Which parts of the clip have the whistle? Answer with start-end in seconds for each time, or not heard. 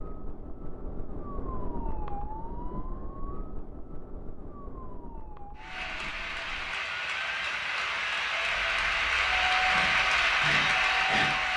not heard.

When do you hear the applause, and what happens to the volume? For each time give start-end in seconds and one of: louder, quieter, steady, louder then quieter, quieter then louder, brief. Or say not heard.
5.5-11.5 louder.